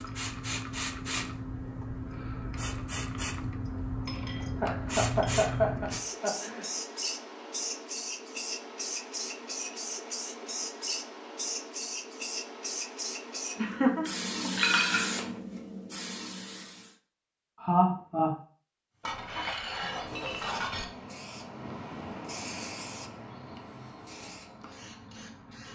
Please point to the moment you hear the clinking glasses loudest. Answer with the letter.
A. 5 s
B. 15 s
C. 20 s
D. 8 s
B.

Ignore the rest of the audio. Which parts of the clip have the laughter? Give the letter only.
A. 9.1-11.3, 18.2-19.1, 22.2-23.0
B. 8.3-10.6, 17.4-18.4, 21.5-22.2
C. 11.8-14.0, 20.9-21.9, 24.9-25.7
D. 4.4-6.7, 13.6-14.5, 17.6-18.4
D.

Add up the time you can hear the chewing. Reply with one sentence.
You can't hear the chewing here.